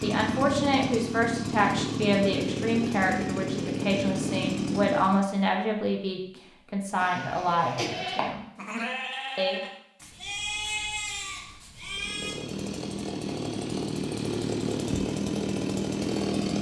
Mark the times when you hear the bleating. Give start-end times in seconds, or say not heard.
7.0-12.4.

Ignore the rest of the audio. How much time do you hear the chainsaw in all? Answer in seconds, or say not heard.
10 s.